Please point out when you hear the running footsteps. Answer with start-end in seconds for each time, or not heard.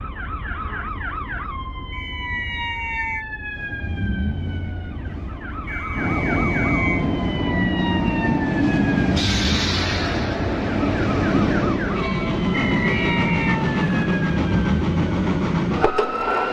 not heard.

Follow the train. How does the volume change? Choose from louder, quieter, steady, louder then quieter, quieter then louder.
louder.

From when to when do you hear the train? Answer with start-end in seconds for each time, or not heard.
3.5-16.4.